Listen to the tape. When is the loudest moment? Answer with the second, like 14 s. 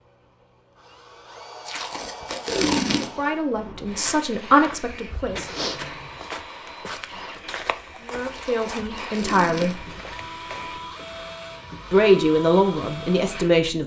3 s.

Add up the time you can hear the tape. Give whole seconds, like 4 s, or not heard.
3 s.